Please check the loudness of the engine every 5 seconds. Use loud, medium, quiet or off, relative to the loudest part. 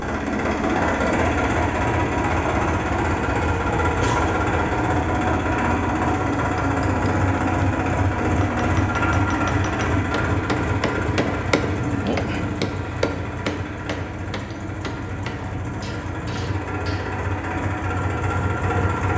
loud, loud, medium, medium.